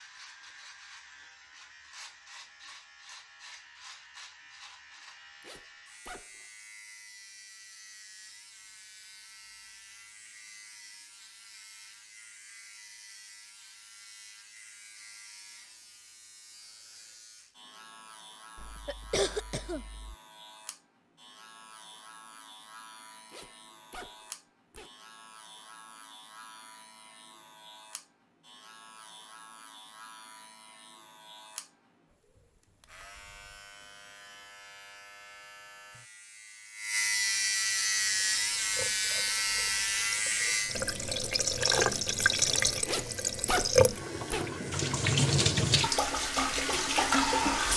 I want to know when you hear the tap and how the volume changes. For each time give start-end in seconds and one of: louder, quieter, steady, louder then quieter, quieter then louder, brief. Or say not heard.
37.5-47.7 louder.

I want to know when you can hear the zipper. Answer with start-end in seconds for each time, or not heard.
5.4-6.5, 23.2-24.9, 42.9-44.5.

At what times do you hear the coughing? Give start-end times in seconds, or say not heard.
18.6-20.1.